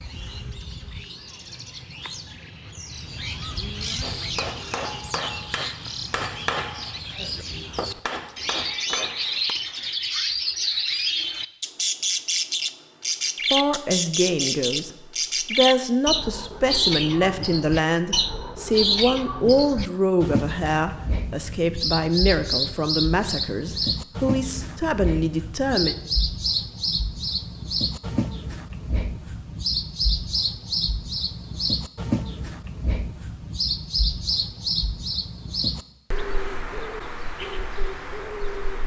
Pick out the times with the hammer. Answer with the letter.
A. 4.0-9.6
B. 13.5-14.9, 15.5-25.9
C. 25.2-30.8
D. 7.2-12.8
A.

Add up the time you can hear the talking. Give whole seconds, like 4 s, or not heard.
12 s.